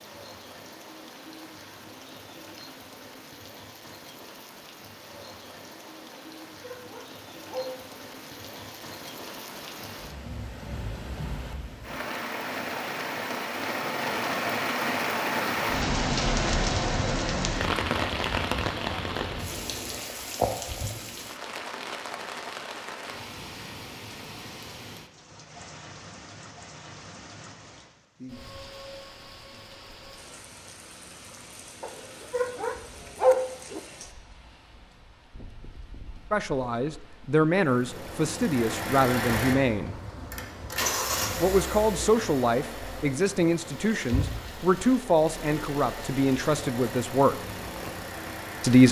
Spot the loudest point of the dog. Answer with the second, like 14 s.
33 s.